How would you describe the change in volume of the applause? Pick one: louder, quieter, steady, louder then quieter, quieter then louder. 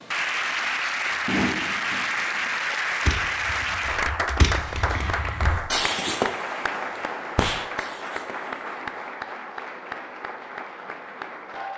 quieter.